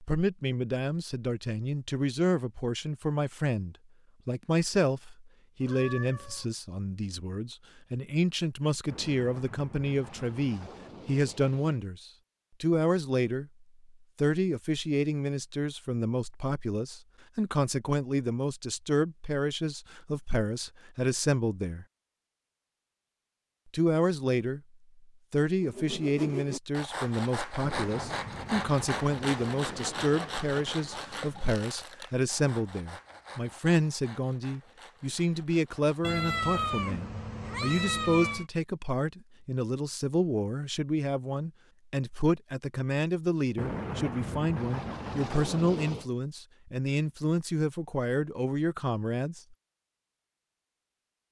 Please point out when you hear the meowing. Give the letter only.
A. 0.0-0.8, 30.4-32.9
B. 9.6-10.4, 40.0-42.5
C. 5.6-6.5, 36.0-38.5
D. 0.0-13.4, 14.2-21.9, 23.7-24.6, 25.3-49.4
C.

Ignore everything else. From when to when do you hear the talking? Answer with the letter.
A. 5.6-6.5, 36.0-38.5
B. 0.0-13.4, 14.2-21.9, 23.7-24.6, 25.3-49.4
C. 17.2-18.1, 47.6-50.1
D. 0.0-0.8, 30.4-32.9
B.